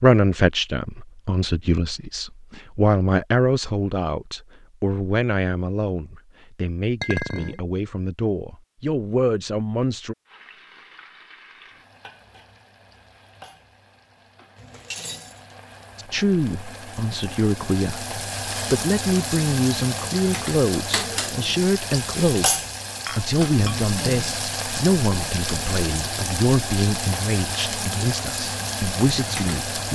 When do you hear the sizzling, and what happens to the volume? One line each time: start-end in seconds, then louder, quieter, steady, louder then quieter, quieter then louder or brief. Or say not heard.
10.2-29.8 louder.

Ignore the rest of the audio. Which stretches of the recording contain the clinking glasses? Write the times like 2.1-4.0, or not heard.
7.0-7.6, 14.6-15.6, 23.1-23.9.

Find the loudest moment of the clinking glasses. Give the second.
7 s.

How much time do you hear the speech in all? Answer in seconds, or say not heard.
24 s.